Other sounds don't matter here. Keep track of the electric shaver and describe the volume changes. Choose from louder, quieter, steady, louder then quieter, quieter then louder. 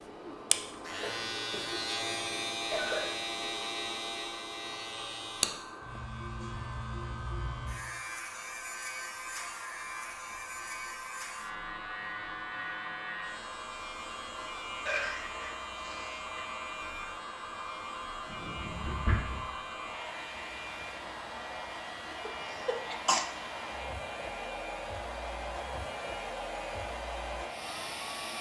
quieter.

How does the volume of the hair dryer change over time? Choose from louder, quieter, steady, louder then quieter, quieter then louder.
louder.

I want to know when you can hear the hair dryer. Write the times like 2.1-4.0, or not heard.
0.0-28.3.